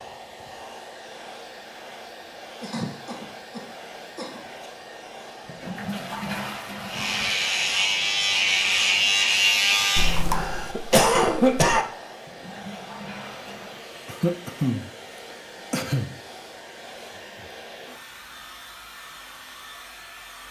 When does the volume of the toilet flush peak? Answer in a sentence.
The volume of the toilet flush peaks at 6 seconds.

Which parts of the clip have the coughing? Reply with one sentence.
You can hear the coughing from 2.6 to 4.5 s, from 9.9 to 11.8 s, from 14.1 to 14.9 s and from 15.7 to 16.1 s.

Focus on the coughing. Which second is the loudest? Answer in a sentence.
The loudest moment of the coughing is at 11 seconds.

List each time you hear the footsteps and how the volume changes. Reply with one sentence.
You can't hear the footsteps here.